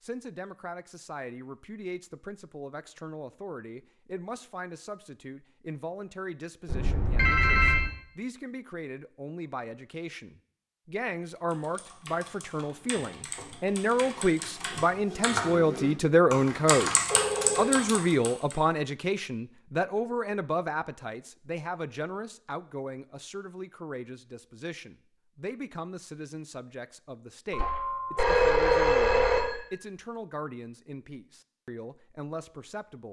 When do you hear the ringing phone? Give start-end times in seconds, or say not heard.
6.7-7.9, 17.1-17.8, 27.5-29.7.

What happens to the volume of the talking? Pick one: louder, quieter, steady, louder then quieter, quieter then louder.
louder then quieter.